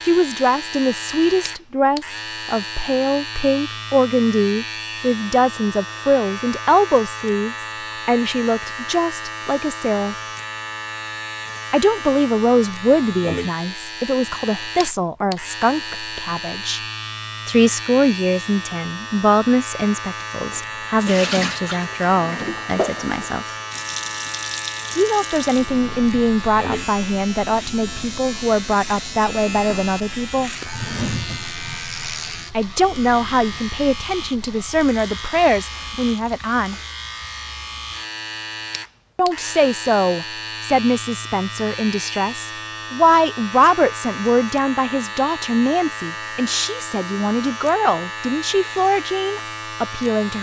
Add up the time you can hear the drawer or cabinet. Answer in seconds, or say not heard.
3 s.